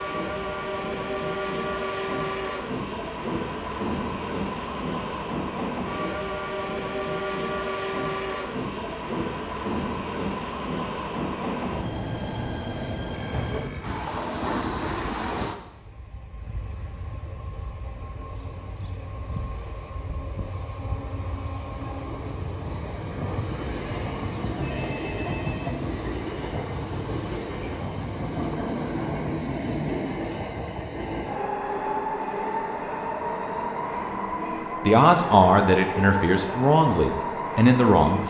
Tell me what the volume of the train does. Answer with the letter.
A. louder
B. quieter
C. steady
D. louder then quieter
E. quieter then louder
E.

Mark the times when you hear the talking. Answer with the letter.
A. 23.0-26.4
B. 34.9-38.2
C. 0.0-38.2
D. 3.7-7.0
B.